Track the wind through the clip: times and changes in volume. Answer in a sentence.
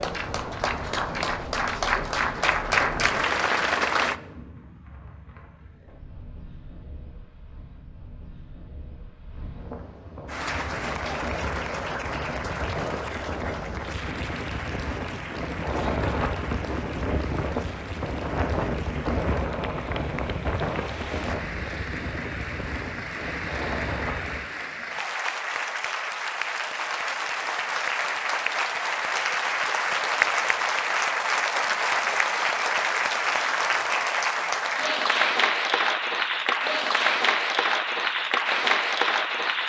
You can hear the wind from 0.0 to 24.4 s, getting quieter then louder.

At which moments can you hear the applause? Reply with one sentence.
You can hear the applause from 0.0 to 4.2 s and from 10.2 to 39.6 s.